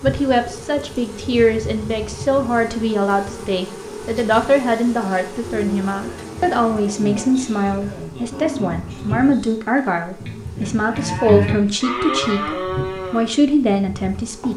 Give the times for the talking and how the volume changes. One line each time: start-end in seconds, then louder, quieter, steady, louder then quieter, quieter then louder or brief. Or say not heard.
0.0-14.5 steady.